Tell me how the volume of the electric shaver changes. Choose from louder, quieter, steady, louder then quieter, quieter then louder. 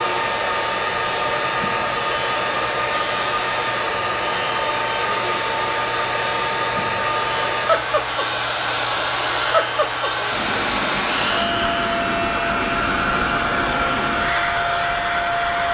steady.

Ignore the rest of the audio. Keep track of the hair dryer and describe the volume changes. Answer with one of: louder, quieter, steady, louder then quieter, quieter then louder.
steady.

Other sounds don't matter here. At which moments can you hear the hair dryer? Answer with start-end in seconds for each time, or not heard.
0.0-15.6.